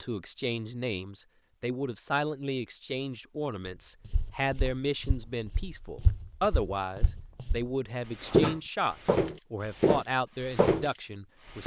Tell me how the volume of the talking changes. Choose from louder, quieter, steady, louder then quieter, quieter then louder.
steady.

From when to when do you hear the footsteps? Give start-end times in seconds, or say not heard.
4.0-11.6.